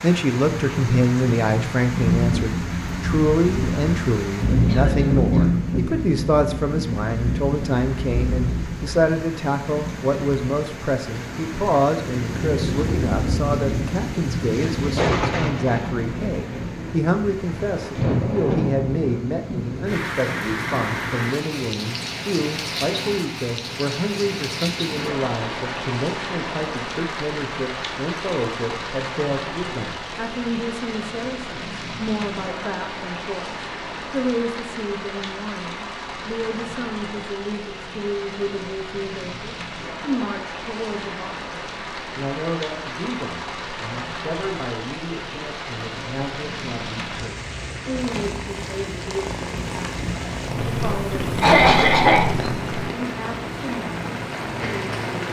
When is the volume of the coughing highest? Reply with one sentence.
The volume of the coughing peaks at 52 seconds.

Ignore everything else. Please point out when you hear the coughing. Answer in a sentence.
The coughing can be heard from 4.7 to 5.6 s and from 51.4 to 52.3 s.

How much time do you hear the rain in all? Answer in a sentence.
You can hear the rain for 55 seconds altogether.